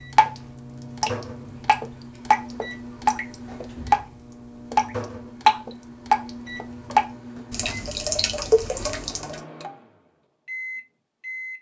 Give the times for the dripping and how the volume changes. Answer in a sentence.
You can hear the dripping from 0.0 to 9.4 s, getting louder then quieter.